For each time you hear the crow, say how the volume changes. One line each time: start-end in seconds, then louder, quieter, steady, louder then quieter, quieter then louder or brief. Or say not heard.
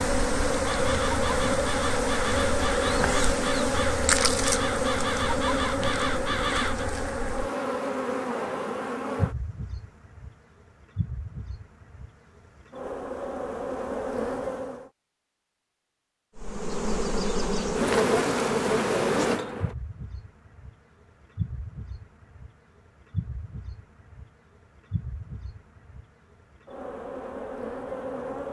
0.5-6.8 steady.